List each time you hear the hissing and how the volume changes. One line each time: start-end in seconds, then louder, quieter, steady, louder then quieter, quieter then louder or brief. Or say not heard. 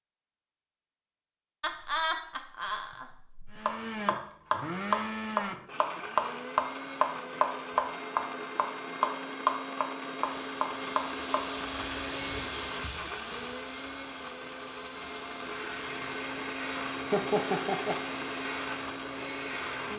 10.2-19.9 quieter.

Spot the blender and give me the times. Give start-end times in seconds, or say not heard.
3.5-19.9.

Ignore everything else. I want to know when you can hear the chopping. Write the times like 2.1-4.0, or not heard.
3.6-11.4.